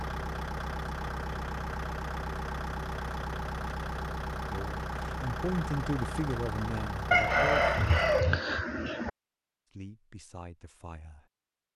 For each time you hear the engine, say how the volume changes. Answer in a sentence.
The engine can be heard from 0.0 to 8.2 s, at a steady volume.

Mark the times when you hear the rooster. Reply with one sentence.
You can hear the rooster from 7.1 to 9.1 s.